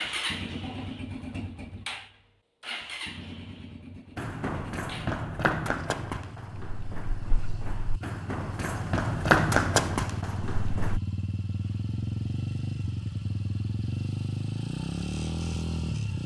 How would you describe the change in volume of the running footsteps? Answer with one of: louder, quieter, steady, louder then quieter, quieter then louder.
quieter then louder.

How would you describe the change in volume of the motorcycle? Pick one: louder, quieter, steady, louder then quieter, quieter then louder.
quieter then louder.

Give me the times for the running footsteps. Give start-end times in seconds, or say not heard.
4.2-11.0.